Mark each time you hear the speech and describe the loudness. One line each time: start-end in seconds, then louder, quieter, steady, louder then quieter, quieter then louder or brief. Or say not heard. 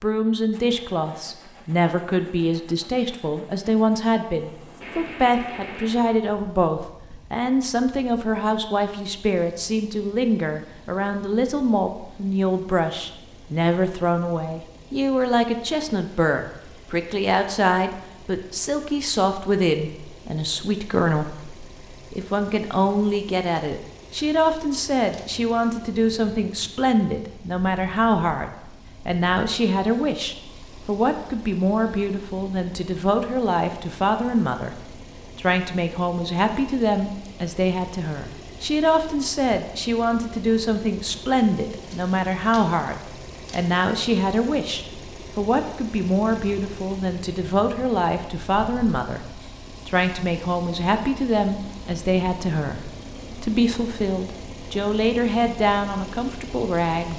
0.0-34.8 steady
35.4-49.2 steady
49.9-57.1 steady.